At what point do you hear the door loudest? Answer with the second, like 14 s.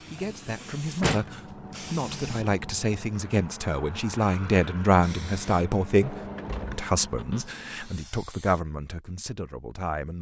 1 s.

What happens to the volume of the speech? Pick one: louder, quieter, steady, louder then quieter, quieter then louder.
louder then quieter.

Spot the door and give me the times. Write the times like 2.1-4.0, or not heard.
0.6-1.3, 6.0-7.5.